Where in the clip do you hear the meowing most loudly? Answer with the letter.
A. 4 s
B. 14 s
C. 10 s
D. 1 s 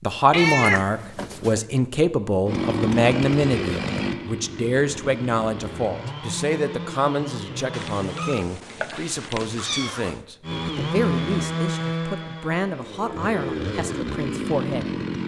D.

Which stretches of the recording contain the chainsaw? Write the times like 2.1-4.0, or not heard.
2.5-8.4, 10.4-15.2.